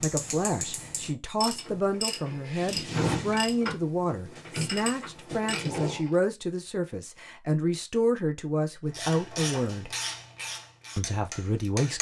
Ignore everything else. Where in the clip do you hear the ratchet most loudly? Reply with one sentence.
The volume of the ratchet peaks at 3 seconds.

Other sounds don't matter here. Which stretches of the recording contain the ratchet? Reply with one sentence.
The ratchet can be heard from 0.0 to 6.1 s and from 8.9 to 11.9 s.